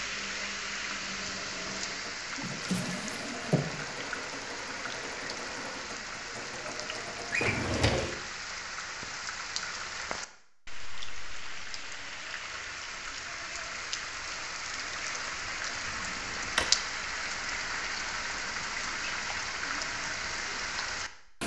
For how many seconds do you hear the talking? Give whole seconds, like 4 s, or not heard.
not heard.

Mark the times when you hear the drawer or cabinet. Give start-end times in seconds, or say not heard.
2.4-3.7, 7.3-8.2, 15.8-16.6.